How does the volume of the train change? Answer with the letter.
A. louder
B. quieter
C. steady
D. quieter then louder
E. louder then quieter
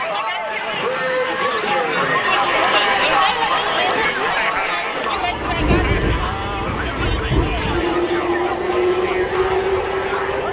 D.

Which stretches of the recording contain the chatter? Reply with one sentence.
The chatter can be heard from 0.0 to 10.4 s.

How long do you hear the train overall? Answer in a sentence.
You can hear the train for 5 seconds altogether.